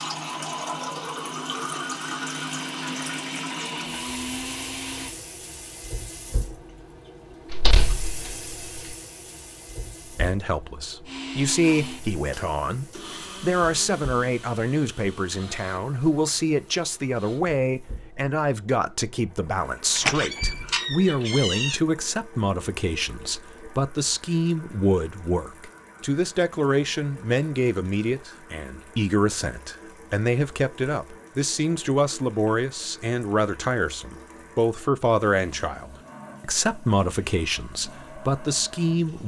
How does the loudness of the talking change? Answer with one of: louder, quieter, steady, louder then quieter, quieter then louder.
steady.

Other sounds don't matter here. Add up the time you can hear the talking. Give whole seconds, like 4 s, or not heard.
29 s.